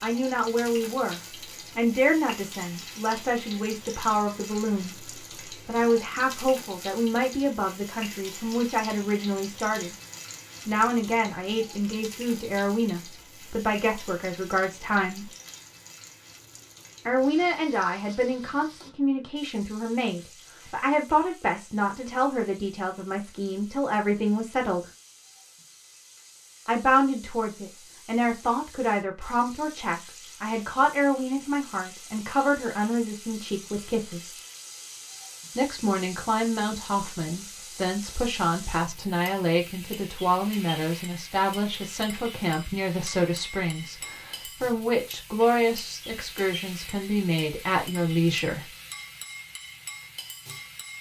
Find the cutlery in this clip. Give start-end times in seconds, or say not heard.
not heard.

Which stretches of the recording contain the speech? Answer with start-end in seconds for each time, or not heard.
0.0-9.9, 10.7-15.3, 17.1-24.9, 26.6-34.4, 35.5-48.6.